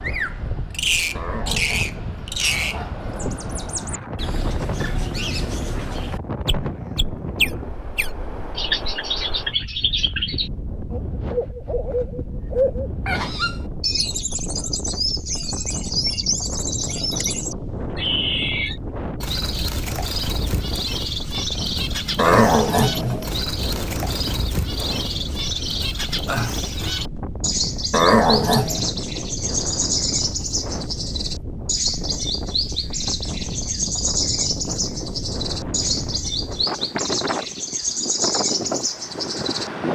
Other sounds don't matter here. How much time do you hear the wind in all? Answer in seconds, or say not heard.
40 s.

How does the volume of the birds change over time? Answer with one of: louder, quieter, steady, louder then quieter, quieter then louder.
steady.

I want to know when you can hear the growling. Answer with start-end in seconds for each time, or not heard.
1.1-3.0, 22.1-23.3, 27.9-28.9.